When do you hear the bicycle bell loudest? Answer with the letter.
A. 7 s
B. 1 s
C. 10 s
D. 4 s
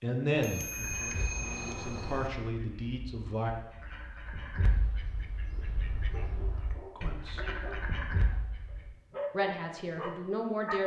B.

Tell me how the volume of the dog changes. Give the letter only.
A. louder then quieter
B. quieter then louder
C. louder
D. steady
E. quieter
B.